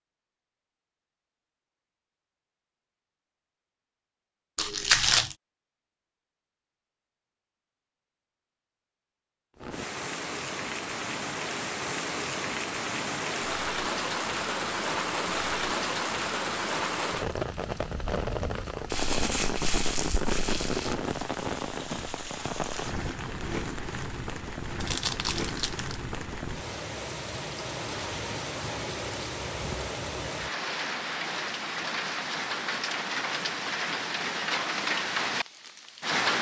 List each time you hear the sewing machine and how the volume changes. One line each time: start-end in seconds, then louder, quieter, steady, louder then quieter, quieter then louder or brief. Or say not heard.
not heard.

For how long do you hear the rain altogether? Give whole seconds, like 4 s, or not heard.
27 s.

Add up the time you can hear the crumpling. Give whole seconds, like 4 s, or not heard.
4 s.